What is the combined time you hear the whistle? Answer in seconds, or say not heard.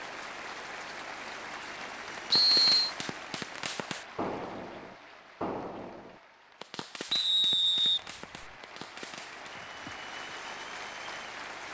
2 s.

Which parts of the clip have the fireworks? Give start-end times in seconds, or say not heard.
2.1-9.6.